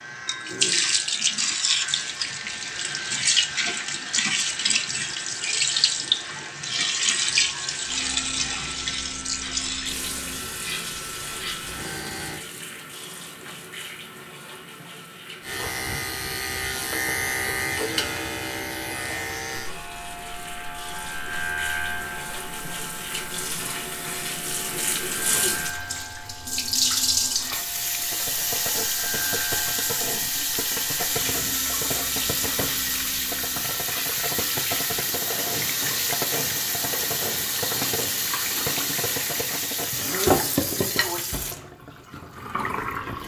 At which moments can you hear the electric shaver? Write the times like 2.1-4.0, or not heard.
0.0-12.4, 15.4-39.5.